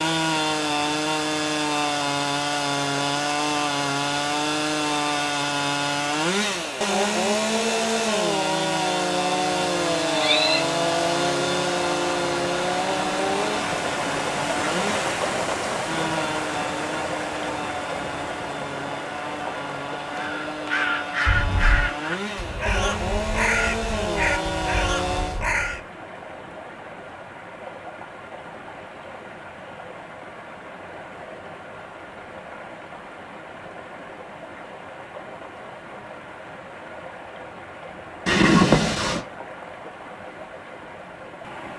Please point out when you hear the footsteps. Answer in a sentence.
You can't hear the footsteps here.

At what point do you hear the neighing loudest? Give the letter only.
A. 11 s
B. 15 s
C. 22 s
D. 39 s
D.